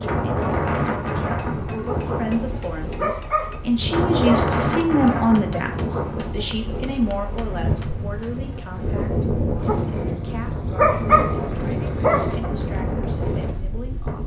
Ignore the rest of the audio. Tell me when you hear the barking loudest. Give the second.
11 s.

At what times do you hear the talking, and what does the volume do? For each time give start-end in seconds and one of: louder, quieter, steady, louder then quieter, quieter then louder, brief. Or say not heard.
0.0-14.2 louder then quieter.